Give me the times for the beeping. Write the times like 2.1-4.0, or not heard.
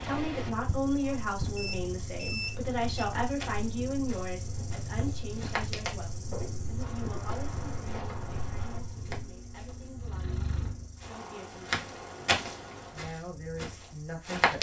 1.6-3.1.